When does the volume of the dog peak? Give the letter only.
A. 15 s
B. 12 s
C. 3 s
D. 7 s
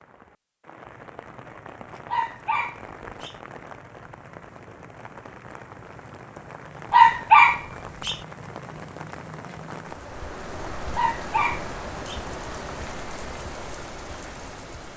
D.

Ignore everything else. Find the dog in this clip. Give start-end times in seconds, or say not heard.
2.0-3.4, 6.9-8.2, 10.9-12.2.